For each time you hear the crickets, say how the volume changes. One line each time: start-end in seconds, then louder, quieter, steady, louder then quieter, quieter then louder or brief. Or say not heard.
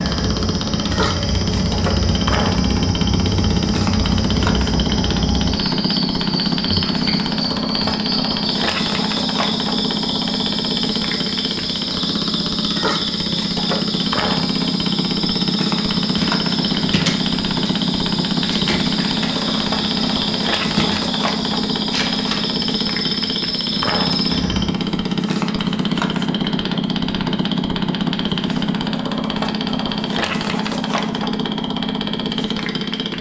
0.0-24.8 steady.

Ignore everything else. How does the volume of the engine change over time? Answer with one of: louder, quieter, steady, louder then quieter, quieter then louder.
steady.